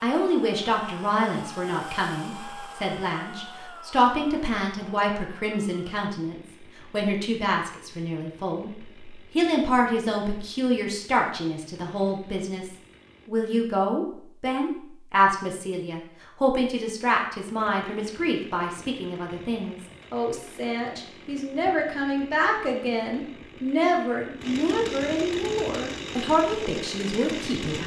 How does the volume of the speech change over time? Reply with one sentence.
The loudness of the speech stays about the same.